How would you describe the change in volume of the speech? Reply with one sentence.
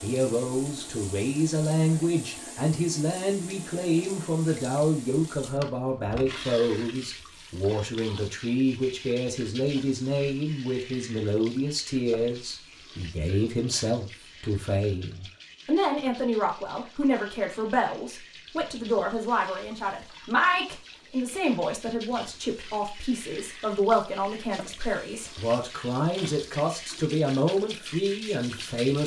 The volume of the speech stays about the same.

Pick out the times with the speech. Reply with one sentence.
You can hear the speech from 0.0 to 29.0 s.